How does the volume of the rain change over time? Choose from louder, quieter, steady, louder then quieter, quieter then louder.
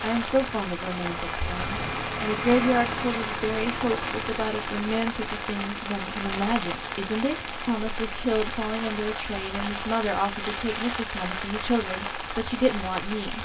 steady.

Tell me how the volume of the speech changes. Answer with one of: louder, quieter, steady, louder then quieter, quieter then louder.
steady.